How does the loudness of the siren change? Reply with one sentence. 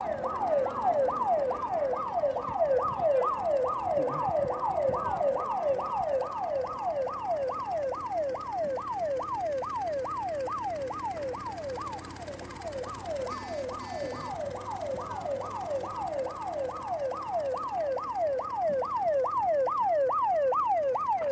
The volume of the siren goes down, then up.